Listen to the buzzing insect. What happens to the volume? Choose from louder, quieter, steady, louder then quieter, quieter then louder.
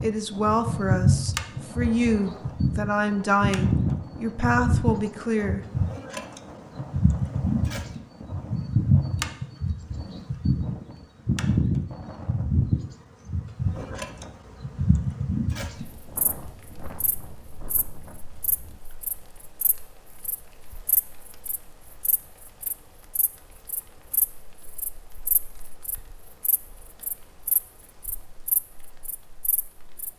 quieter.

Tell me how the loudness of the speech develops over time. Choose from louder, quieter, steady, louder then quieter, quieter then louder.
steady.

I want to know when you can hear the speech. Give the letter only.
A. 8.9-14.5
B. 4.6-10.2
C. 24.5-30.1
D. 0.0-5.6
D.